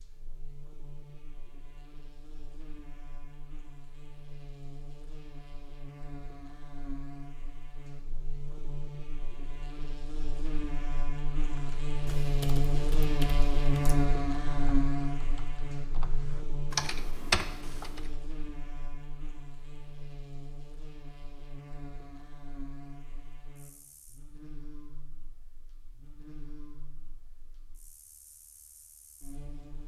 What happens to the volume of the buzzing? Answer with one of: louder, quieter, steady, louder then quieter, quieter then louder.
louder then quieter.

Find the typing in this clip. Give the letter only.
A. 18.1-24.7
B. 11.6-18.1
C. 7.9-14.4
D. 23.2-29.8
B.